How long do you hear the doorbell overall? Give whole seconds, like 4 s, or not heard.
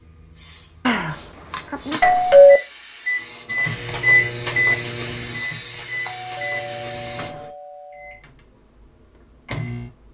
4 s.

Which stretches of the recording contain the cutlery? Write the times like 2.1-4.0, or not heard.
not heard.